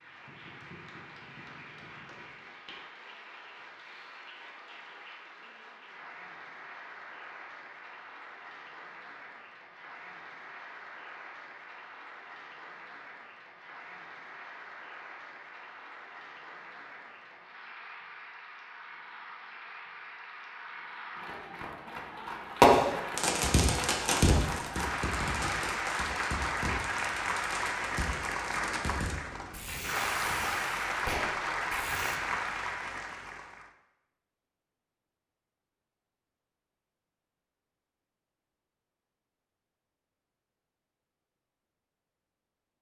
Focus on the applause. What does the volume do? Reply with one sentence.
The loudness of the applause goes up.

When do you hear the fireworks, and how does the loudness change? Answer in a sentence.
The fireworks can be heard from 22.6 to 32.2 s, getting quieter.